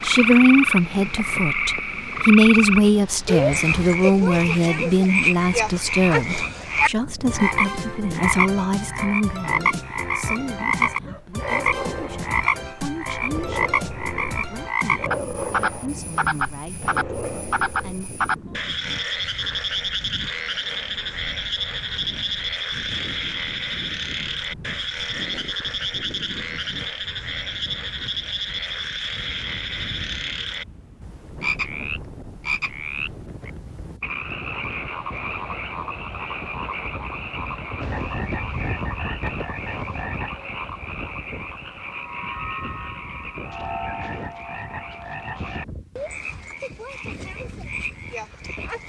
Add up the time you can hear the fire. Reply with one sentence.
You can't hear the fire here.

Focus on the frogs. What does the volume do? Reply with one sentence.
The volume of the frogs goes down.